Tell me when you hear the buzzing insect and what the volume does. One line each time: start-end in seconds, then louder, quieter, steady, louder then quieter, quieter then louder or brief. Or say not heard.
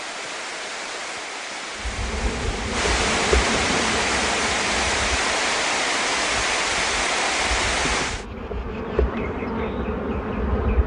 1.8-10.8 quieter then louder.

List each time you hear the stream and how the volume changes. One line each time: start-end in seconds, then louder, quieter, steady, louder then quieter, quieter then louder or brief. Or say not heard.
0.0-8.2 louder.